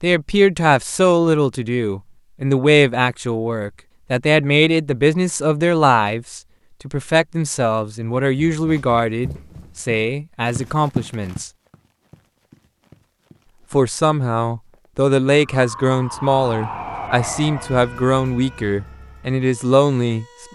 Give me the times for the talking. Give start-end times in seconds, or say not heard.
0.0-11.5, 13.7-20.5.